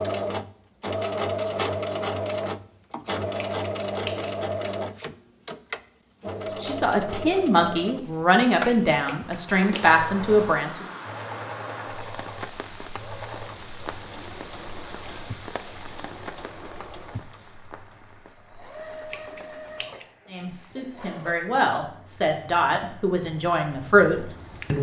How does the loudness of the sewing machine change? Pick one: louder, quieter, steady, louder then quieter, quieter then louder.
quieter.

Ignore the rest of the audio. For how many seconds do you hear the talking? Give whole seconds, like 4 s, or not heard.
9 s.